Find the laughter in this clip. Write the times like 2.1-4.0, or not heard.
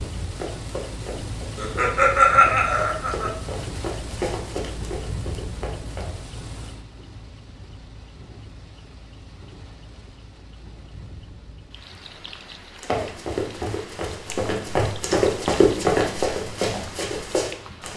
1.6-3.3.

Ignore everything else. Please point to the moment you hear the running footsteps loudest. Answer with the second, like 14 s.
16 s.